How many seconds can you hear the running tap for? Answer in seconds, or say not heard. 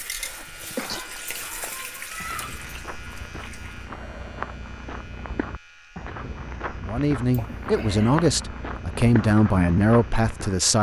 4 s.